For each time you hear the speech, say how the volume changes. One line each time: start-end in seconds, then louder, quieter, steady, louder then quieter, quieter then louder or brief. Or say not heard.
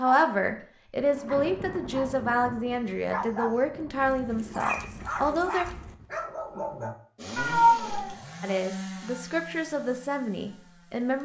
0.0-5.7 steady
8.4-11.2 brief.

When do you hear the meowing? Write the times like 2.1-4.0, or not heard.
7.3-8.2.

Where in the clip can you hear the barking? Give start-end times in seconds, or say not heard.
0.0-0.7, 1.2-2.2, 3.1-7.0.